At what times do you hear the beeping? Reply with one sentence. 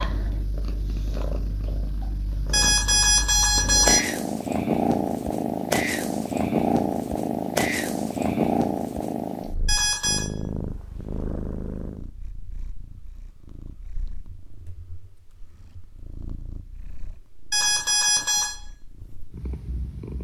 You can hear the beeping from 2.5 to 4.0 s, from 9.7 to 10.3 s and from 17.5 to 18.6 s.